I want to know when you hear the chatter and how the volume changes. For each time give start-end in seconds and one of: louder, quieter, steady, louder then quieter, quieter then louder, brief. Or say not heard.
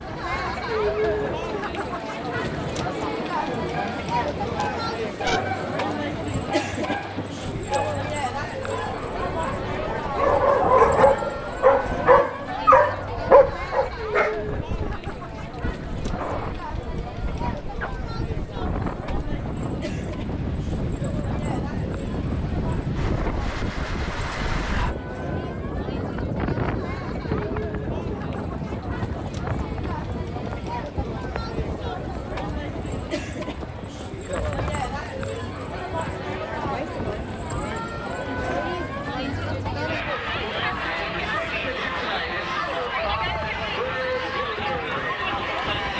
0.0-45.9 quieter then louder.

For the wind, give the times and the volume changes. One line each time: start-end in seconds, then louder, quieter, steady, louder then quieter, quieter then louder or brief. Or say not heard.
0.0-45.9 louder then quieter.